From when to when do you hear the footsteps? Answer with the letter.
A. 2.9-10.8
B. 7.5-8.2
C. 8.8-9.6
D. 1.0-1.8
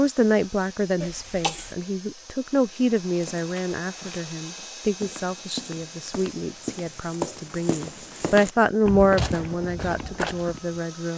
A.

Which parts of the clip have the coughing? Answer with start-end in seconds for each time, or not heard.
1.0-1.8.